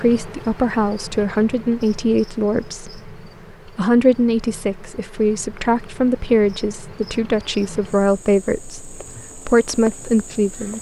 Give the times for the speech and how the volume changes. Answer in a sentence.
The speech can be heard from 0.0 to 10.7 s, at a steady volume.